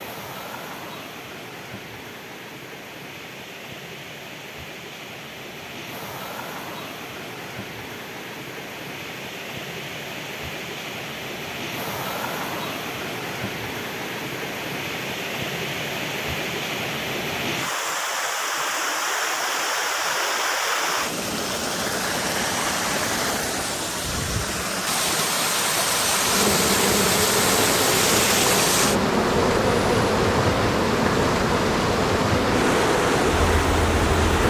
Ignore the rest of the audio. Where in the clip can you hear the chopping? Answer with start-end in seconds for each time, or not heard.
not heard.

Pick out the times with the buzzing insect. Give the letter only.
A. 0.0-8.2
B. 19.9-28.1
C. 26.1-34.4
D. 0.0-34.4
C.